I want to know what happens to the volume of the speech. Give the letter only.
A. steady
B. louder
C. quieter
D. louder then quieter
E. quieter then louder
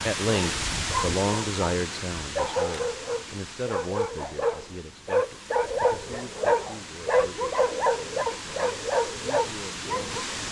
C.